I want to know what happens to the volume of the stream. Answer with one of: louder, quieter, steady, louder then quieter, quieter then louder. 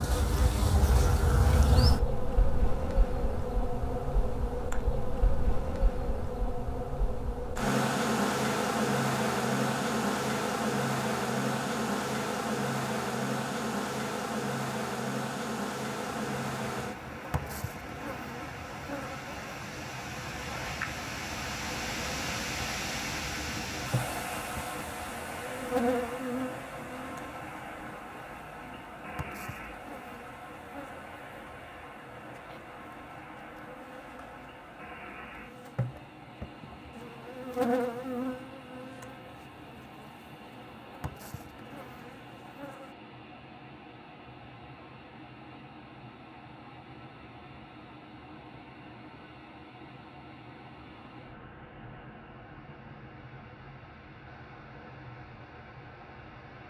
quieter.